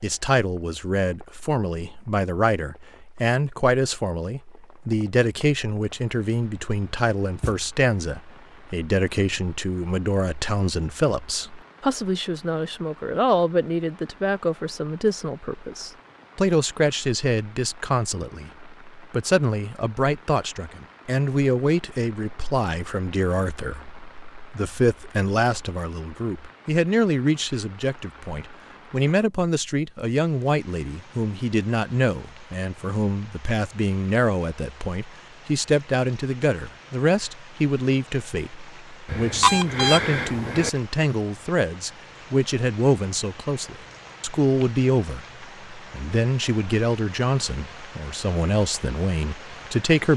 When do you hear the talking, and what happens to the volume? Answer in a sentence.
The talking can be heard from 0.0 to 50.1 s, at a steady volume.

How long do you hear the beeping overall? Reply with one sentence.
The beeping can be heard for 2 seconds in total.